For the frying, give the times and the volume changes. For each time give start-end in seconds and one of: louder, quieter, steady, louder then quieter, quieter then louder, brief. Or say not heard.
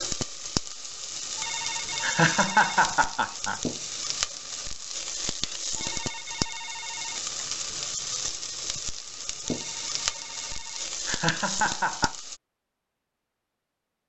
0.0-12.4 steady.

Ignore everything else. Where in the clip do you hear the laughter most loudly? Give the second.
3 s.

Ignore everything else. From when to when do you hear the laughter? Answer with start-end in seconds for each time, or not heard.
2.0-3.6, 11.1-12.2.